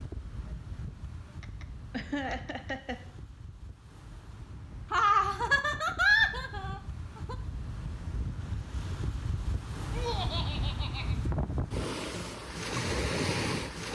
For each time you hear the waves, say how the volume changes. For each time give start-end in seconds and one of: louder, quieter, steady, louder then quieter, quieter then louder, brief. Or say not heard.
0.0-13.9 louder.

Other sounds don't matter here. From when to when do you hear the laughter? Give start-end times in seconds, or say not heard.
1.4-3.0, 4.9-7.3, 9.9-11.2.